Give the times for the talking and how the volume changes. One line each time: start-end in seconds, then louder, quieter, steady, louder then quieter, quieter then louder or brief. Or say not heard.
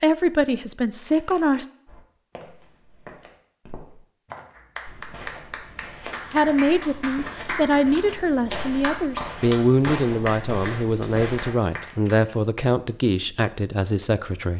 0.0-1.6 brief
6.3-14.5 steady.